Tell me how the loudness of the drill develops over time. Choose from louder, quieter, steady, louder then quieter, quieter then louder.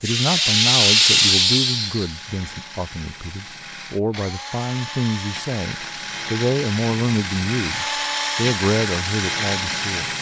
louder.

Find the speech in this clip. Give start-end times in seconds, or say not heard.
0.0-10.1.